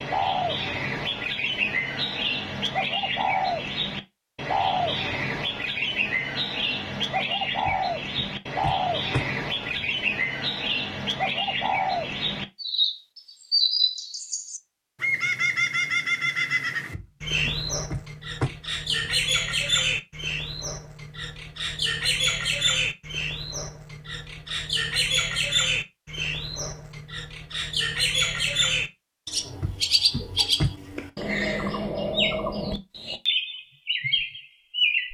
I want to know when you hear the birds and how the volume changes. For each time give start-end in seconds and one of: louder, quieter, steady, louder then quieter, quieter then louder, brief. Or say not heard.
0.0-35.0 steady.